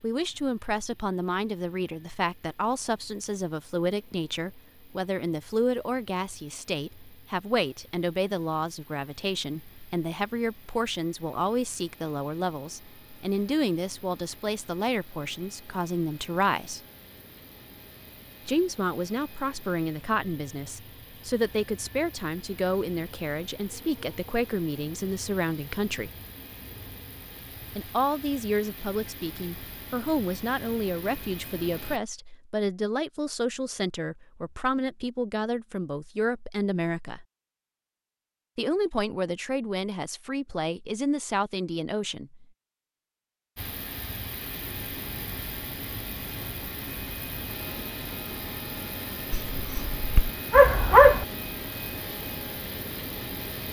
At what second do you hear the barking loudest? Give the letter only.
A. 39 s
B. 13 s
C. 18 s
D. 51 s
D.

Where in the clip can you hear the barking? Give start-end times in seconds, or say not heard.
49.5-51.2.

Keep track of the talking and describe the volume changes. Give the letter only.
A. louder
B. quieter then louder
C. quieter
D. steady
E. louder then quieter
D.